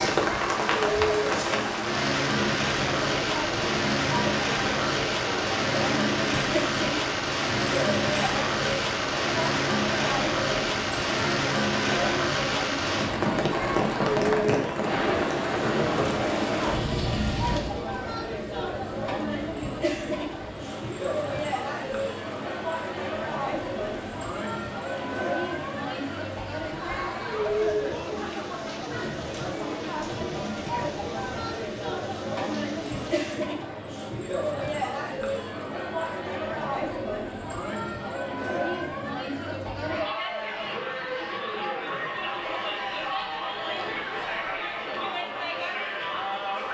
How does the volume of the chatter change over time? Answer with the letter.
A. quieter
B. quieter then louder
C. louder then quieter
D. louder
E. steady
E.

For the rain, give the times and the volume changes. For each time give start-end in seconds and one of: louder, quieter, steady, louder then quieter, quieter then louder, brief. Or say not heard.
0.0-33.4 quieter.